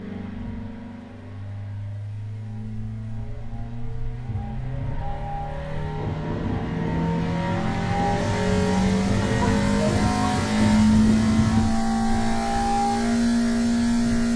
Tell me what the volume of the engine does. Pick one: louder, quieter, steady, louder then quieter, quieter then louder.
louder.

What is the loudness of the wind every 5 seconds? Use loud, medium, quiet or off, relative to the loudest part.
quiet, loud, loud.